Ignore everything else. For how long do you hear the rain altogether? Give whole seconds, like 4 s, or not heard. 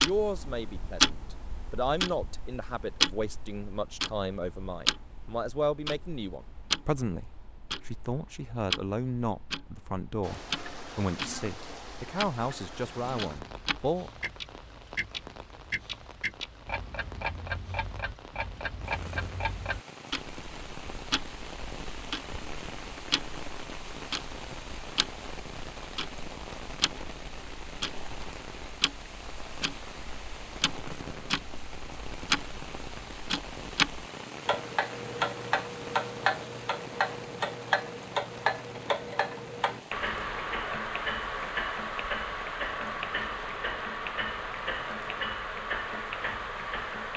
37 s.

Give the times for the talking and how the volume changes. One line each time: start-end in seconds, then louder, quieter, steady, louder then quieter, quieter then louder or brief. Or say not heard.
0.0-14.1 steady.